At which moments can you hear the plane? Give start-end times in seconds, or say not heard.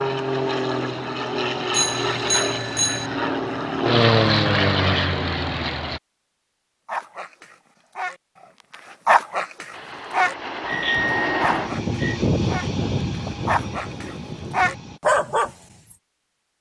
0.0-6.0, 9.7-15.0.